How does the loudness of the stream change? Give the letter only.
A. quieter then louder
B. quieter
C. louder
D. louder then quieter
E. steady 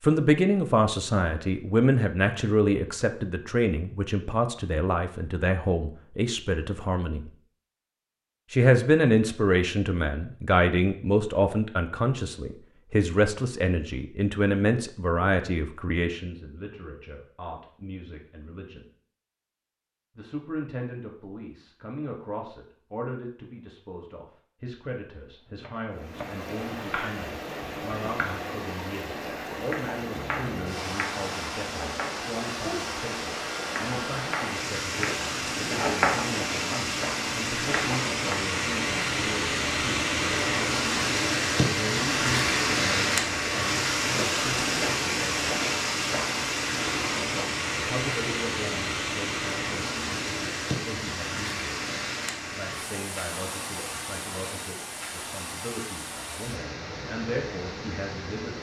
D.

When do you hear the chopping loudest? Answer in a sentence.
The volume of the chopping peaks at 36 seconds.